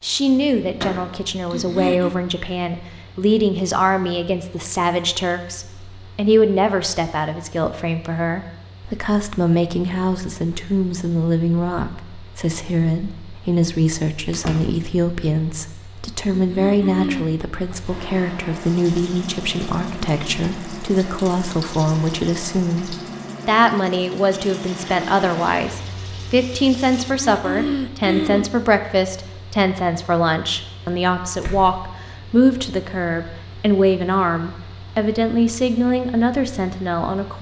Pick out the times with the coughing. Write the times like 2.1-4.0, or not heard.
1.5-2.1, 16.3-17.2, 26.9-28.5.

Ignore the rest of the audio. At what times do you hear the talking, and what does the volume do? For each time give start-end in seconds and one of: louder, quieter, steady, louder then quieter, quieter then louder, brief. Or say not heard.
0.0-37.3 steady.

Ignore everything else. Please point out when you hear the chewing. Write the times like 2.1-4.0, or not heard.
not heard.